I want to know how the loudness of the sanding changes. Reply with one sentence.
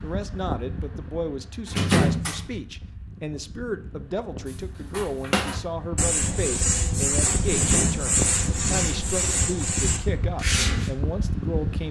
The loudness of the sanding stays about the same.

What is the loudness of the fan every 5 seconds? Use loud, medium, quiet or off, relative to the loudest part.
medium, loud, loud.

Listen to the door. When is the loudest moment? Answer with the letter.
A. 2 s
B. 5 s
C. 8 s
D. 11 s
A.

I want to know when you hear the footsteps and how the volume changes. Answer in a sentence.
You can't hear the footsteps here.